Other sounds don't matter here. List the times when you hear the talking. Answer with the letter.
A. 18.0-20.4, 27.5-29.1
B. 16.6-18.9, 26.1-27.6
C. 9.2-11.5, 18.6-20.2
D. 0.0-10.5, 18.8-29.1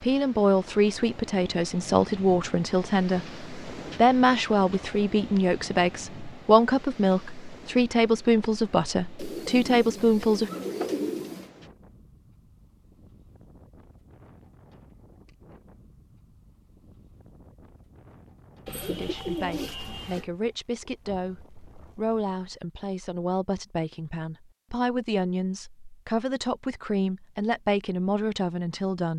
D.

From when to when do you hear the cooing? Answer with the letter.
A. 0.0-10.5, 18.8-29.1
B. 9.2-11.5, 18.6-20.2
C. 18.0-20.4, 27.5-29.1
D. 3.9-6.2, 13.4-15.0
B.